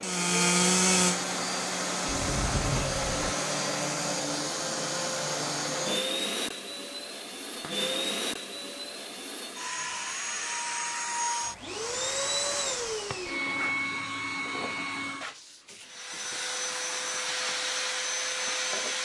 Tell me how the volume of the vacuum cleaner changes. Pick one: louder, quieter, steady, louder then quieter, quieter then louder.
steady.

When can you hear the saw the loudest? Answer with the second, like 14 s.
1 s.